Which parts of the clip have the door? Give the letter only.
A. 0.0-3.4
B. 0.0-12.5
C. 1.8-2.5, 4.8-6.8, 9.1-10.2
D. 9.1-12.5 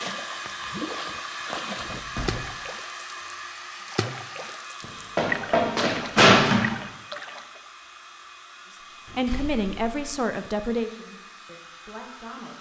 C.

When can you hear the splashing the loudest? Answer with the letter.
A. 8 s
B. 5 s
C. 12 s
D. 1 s
B.